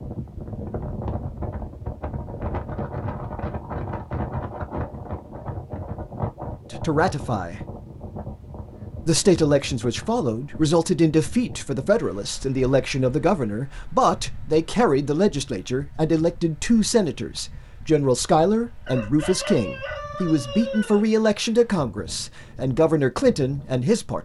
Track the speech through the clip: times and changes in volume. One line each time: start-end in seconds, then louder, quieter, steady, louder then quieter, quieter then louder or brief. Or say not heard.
6.7-7.6 brief
9.1-24.2 steady.